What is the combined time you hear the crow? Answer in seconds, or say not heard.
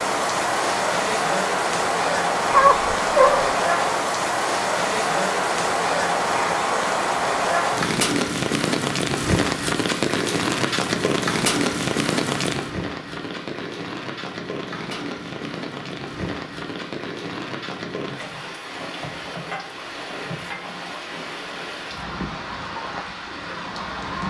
not heard.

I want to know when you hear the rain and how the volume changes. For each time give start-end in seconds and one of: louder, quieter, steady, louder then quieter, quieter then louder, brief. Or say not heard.
0.0-24.2 quieter.